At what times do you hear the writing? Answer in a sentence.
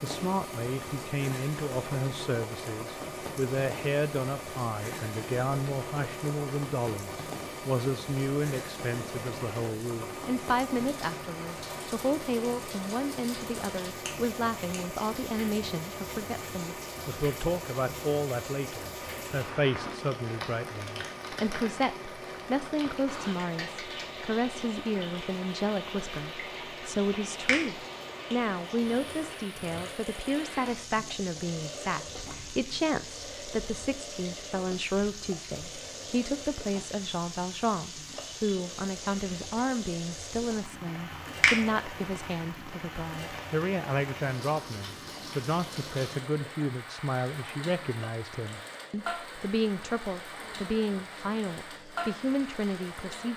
You can't hear the writing here.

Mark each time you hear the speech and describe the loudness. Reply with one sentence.
You can hear the speech from 0.0 to 53.3 s, at a steady volume.